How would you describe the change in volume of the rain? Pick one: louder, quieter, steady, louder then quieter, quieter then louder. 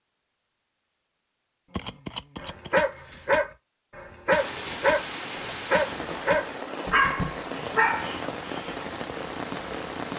steady.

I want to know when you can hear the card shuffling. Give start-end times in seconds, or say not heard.
1.7-2.8, 6.8-7.5.